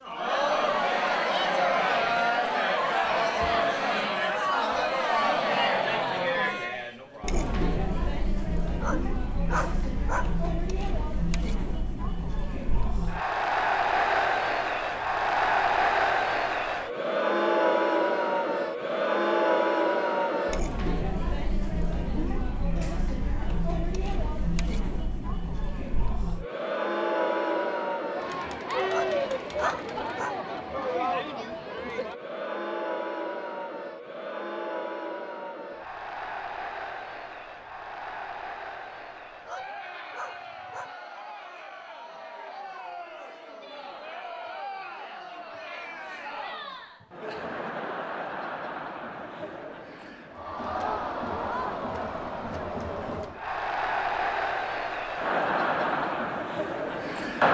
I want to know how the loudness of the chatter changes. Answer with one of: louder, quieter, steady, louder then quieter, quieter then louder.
quieter then louder.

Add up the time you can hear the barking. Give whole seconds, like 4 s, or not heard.
5 s.